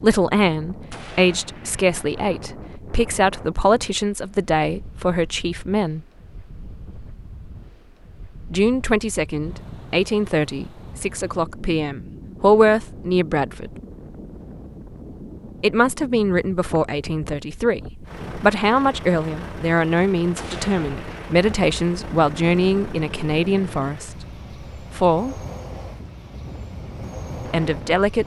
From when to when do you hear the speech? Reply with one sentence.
The speech can be heard from 0.0 to 6.0 s, from 8.5 to 13.7 s, from 15.6 to 24.2 s, from 24.9 to 25.4 s and from 27.5 to 28.2 s.